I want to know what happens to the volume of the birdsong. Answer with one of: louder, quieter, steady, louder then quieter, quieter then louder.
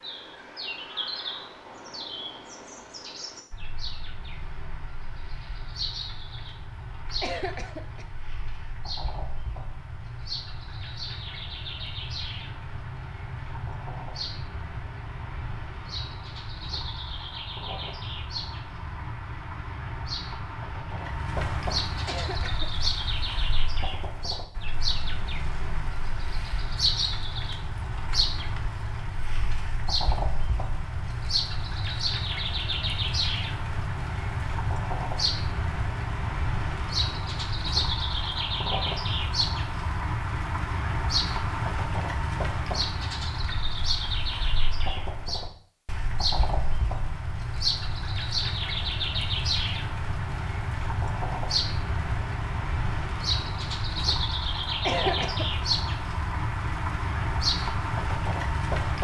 louder.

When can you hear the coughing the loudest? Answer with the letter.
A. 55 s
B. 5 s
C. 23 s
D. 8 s
A.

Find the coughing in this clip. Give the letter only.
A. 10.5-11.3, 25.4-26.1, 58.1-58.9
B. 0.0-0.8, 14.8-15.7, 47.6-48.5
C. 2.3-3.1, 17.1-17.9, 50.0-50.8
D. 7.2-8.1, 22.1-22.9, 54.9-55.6
D.